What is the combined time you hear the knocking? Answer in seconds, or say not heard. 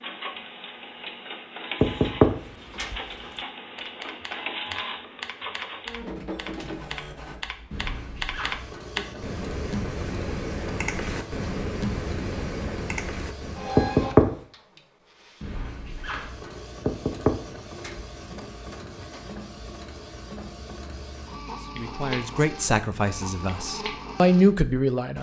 3 s.